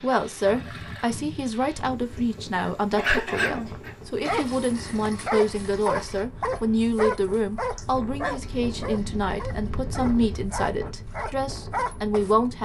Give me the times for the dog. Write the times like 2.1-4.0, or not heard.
3.0-12.3.